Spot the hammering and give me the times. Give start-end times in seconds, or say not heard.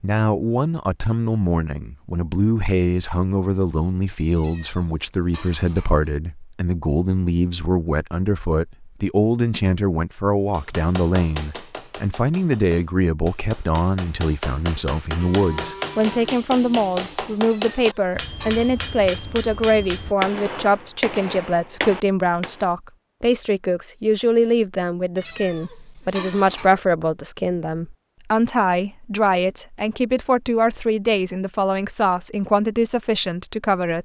10.5-22.6.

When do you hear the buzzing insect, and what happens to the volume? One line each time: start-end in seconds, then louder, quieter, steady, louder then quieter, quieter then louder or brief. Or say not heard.
not heard.